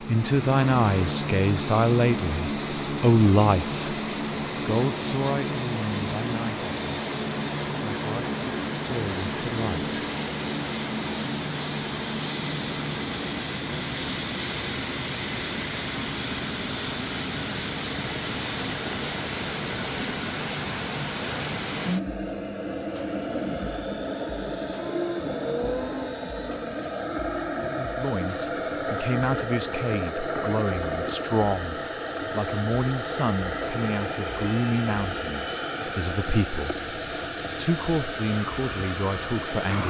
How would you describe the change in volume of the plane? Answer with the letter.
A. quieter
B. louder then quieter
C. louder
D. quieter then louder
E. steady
E.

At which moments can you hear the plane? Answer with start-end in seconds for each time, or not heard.
0.0-39.8.